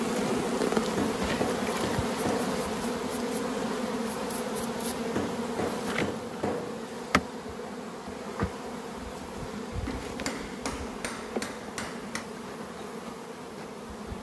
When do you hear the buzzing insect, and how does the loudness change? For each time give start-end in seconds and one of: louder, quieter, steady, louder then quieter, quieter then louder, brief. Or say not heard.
0.0-14.1 quieter.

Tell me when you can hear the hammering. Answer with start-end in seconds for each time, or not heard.
0.9-2.6, 5.2-6.8, 9.8-12.2.